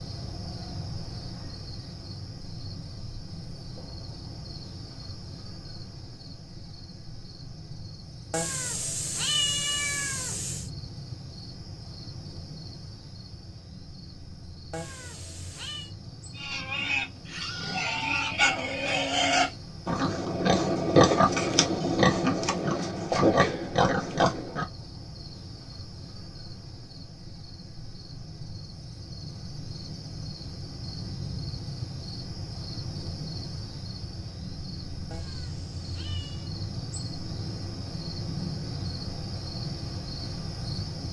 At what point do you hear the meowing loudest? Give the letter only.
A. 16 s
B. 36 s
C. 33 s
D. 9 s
D.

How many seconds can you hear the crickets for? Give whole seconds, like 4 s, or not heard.
41 s.